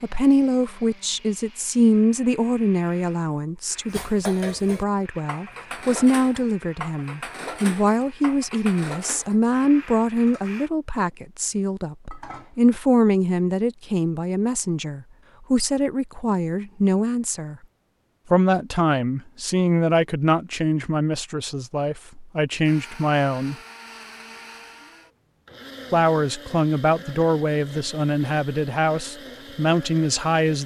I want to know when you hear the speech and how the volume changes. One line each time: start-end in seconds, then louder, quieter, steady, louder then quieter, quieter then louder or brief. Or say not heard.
0.0-17.6 steady
18.3-23.6 quieter then louder
25.9-30.6 steady.